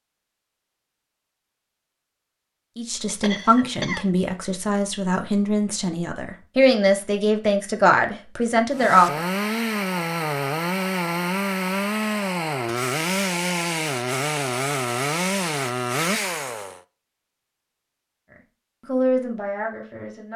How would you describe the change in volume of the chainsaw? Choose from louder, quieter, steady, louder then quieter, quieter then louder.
steady.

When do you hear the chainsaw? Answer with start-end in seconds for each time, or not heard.
8.7-16.8.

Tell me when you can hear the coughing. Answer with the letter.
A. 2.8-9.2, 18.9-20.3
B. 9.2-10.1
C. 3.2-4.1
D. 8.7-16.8
C.